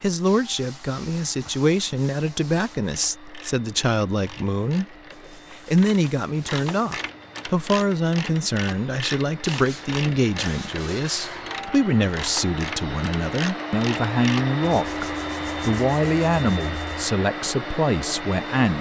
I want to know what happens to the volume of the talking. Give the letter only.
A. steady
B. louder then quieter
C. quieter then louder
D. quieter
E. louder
A.